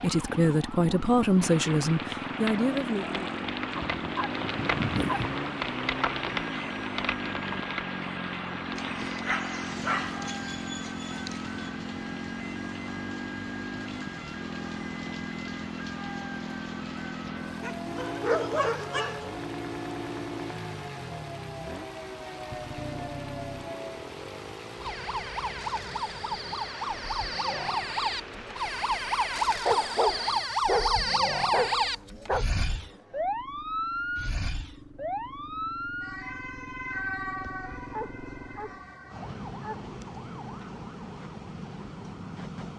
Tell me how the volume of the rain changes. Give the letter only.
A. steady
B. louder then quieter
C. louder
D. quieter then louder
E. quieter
E.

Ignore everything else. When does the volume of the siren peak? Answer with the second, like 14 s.
31 s.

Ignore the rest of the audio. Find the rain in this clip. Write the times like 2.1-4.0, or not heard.
0.0-30.6.